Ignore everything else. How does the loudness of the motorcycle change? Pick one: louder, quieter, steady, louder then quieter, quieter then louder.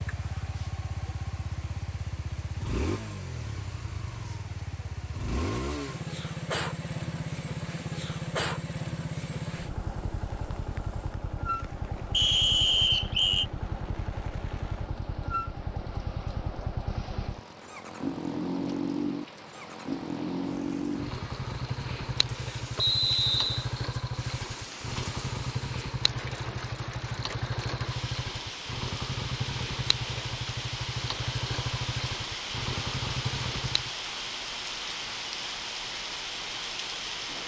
steady.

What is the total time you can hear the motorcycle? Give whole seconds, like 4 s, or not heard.
34 s.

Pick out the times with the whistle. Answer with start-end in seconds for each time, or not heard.
12.1-13.4, 22.8-23.6.